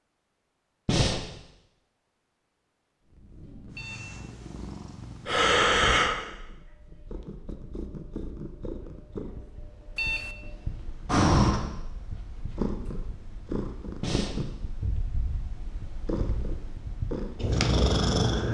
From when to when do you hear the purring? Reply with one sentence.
You can hear the purring from 3.0 to 18.4 s.